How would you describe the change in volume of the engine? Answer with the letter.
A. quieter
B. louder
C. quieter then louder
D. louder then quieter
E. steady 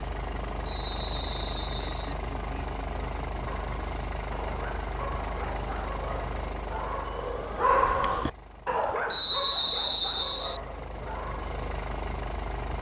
C.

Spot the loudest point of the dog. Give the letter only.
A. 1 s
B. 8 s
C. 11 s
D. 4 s
B.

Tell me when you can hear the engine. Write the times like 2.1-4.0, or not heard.
0.0-12.7.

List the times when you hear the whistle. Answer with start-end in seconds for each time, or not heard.
0.7-2.1, 9.1-10.6.